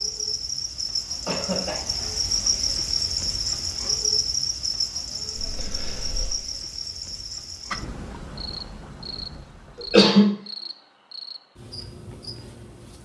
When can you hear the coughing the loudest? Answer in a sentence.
The loudest moment of the coughing is at 10 seconds.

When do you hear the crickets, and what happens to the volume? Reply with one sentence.
You can hear the crickets from 0.0 to 13.0 s, getting quieter.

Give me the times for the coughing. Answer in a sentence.
You can hear the coughing from 1.2 to 1.9 s, from 5.3 to 6.3 s and from 9.8 to 10.3 s.